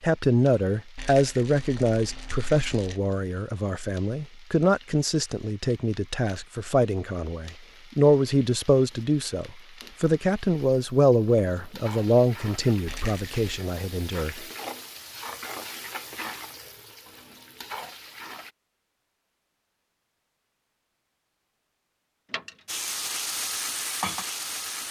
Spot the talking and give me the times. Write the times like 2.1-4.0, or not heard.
0.0-14.4.